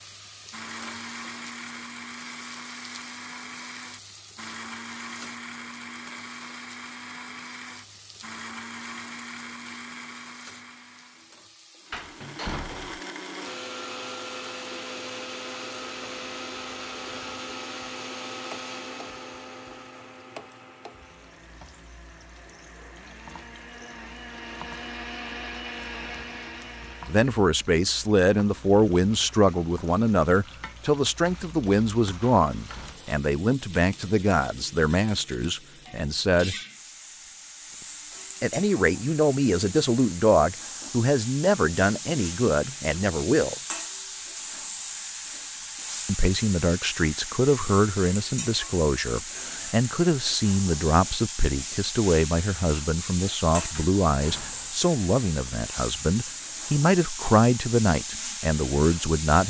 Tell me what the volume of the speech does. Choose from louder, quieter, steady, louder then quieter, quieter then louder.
steady.